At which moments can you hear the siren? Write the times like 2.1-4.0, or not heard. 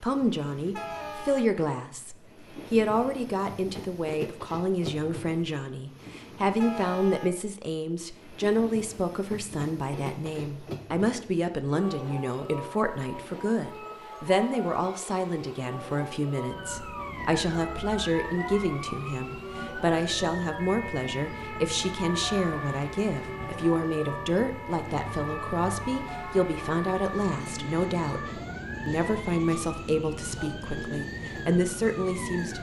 16.5-32.5.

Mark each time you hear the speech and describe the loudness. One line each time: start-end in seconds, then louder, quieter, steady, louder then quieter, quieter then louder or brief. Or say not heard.
0.0-32.5 steady.